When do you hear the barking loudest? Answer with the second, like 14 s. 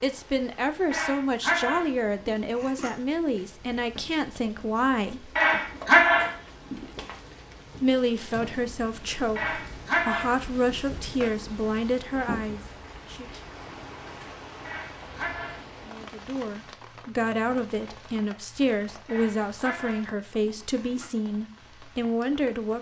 6 s.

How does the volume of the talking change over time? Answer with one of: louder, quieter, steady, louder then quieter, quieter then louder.
steady.